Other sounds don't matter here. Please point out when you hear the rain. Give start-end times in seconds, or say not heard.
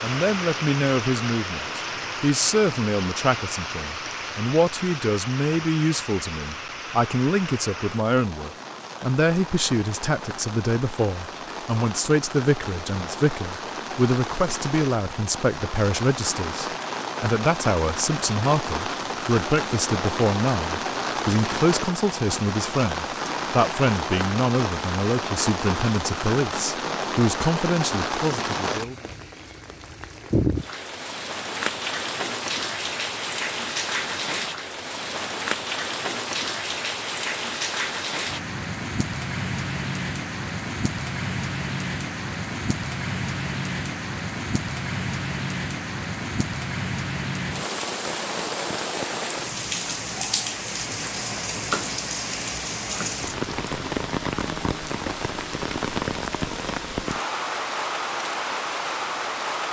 0.0-59.6.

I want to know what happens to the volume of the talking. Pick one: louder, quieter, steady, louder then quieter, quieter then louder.
steady.